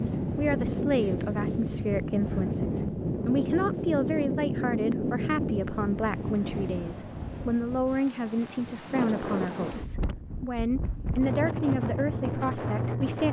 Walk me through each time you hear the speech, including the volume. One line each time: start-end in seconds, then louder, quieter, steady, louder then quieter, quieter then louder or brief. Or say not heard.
0.0-13.2 steady.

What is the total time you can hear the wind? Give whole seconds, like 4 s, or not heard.
13 s.